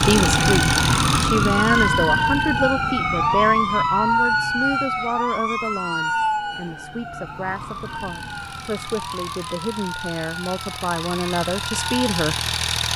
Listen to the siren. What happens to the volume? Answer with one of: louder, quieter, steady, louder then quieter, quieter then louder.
quieter.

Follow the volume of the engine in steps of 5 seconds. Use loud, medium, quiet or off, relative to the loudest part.
loud, quiet, loud.